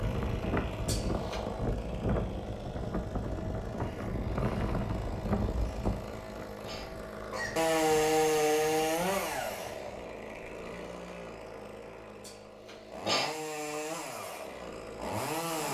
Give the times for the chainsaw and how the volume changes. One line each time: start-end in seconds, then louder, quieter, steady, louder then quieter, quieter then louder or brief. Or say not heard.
0.0-15.7 louder then quieter.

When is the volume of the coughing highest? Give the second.
13 s.